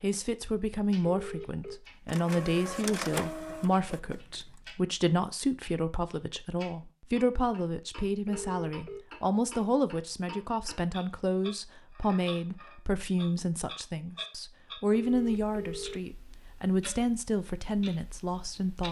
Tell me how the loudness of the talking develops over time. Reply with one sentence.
The loudness of the talking stays about the same.